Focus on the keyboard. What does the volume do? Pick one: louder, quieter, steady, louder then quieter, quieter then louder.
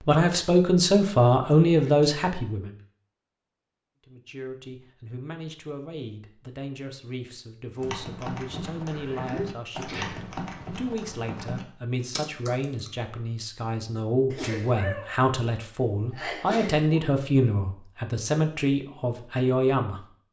steady.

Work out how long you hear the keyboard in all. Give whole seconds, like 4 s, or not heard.
5 s.